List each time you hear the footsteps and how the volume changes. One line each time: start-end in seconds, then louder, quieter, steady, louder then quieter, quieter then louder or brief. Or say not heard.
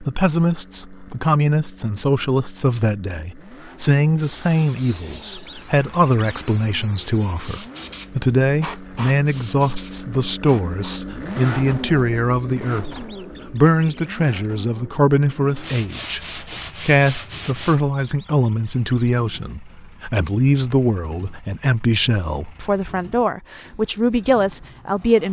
not heard.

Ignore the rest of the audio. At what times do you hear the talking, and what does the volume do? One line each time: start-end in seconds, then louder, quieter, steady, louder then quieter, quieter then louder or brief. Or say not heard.
0.0-25.2 steady.